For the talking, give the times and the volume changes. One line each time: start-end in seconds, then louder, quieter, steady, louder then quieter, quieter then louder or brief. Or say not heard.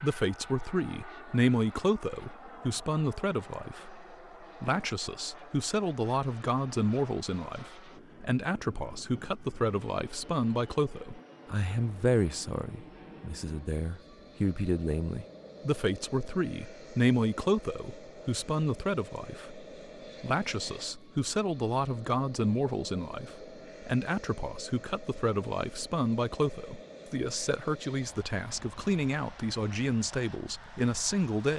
0.0-31.5 steady.